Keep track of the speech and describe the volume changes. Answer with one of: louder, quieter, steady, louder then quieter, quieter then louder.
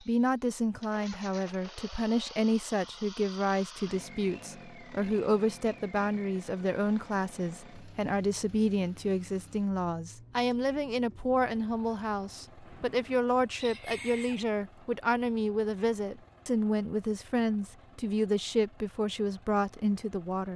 steady.